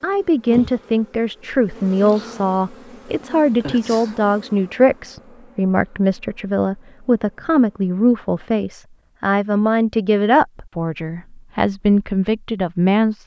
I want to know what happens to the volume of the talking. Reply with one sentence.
The loudness of the talking stays about the same.